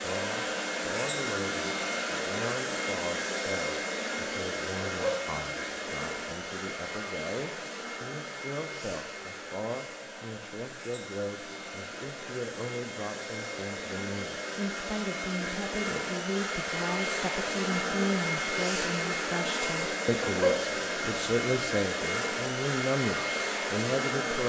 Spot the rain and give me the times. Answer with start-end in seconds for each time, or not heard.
not heard.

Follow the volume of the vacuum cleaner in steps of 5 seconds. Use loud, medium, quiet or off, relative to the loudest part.
loud, medium, medium, loud, loud.